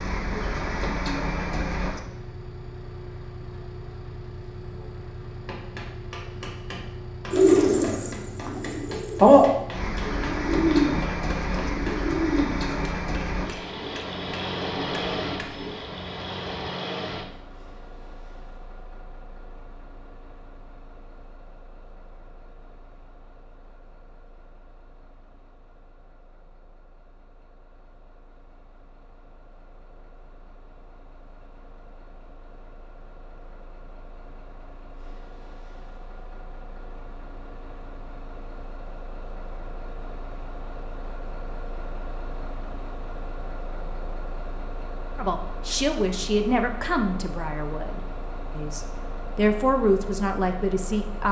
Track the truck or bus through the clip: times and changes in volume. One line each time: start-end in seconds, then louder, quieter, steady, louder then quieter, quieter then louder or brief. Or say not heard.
0.0-51.2 quieter then louder.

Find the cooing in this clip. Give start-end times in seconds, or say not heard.
7.3-12.7.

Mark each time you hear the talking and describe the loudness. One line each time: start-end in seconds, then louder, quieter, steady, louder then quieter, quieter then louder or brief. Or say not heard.
45.1-51.2 quieter then louder.